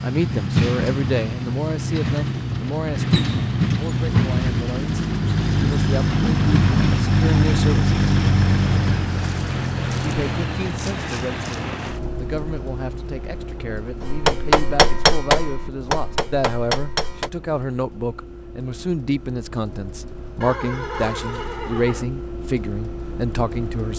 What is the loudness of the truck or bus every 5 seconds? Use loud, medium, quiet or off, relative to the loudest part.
loud, loud, medium, quiet, quiet.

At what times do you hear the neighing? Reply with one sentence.
You can hear the neighing from 20.4 to 22.1 s.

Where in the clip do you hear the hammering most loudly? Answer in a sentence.
The loudest moment of the hammering is at 15 seconds.